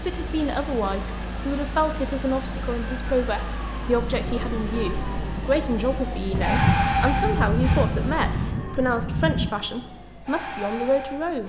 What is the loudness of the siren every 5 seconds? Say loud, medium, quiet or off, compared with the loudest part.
medium, loud, medium.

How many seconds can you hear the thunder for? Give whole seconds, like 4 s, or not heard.
3 s.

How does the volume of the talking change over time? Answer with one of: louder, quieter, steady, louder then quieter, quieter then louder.
steady.